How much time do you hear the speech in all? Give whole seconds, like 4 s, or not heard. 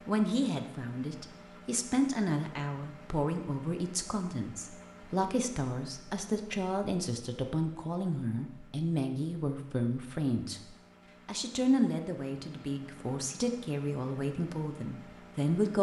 16 s.